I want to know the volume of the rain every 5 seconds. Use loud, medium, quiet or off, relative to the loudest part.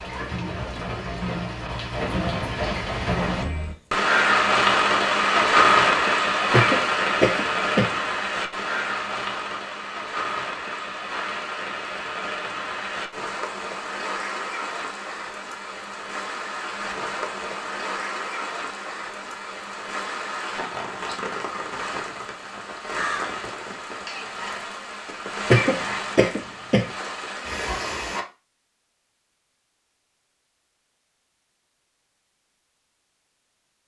loud, loud, medium, medium, medium, medium, off.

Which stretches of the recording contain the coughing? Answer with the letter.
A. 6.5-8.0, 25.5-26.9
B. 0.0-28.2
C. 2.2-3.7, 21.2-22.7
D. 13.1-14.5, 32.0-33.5
A.